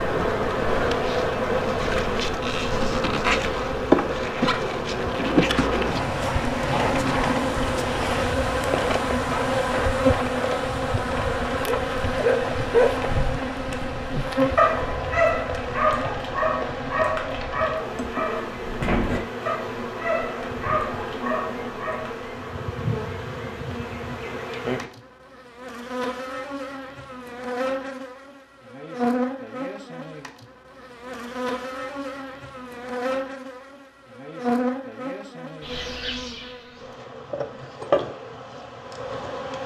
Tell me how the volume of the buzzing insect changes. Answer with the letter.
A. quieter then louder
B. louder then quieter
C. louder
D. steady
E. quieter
E.